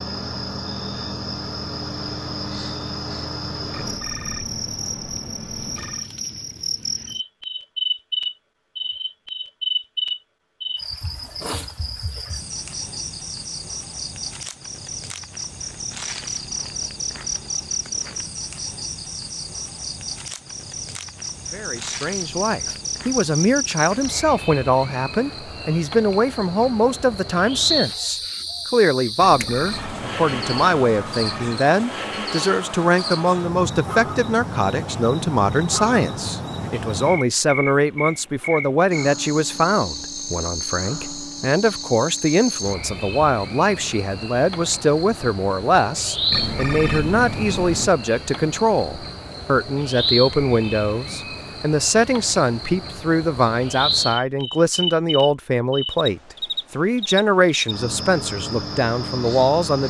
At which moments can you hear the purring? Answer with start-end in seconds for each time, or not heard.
not heard.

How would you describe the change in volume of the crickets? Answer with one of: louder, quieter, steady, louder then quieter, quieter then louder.
steady.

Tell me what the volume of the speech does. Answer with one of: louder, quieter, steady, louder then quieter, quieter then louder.
steady.